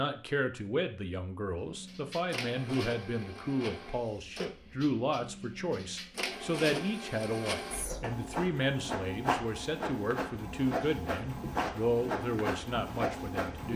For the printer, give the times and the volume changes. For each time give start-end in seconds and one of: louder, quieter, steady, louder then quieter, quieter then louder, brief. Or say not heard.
1.6-13.7 louder.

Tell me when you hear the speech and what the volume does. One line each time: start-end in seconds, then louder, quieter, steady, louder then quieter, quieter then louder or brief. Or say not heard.
0.0-13.7 steady.